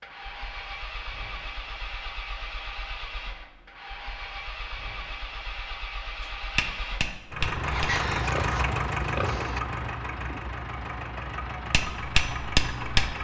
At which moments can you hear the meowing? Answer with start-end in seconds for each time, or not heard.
not heard.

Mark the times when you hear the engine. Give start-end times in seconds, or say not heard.
0.0-13.2.